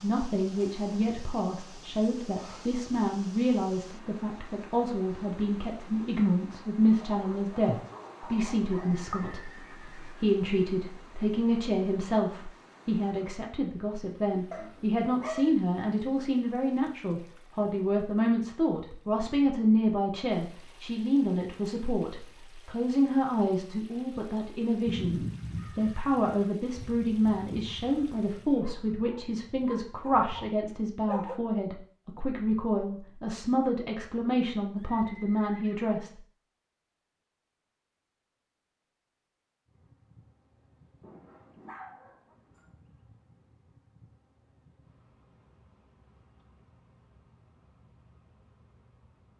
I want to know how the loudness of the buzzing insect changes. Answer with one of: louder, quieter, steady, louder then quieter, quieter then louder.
steady.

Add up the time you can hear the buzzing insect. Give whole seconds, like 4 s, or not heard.
10 s.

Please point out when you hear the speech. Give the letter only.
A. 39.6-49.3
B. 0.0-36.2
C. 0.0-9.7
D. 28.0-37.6
B.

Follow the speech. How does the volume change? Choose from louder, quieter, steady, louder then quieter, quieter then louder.
steady.